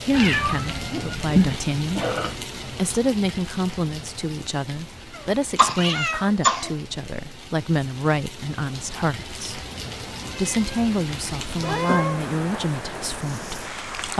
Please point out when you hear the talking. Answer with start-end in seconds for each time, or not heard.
0.1-2.0, 2.8-9.7, 10.3-14.1.